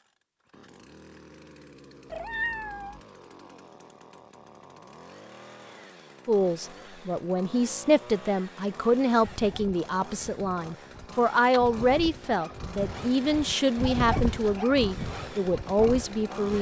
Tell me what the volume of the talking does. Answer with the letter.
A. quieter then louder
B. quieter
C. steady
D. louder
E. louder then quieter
C.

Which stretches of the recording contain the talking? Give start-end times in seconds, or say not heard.
6.2-16.5.